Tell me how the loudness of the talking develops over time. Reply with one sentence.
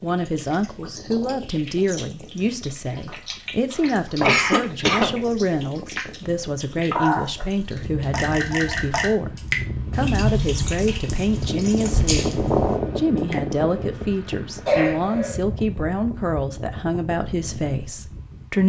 The volume of the talking stays about the same.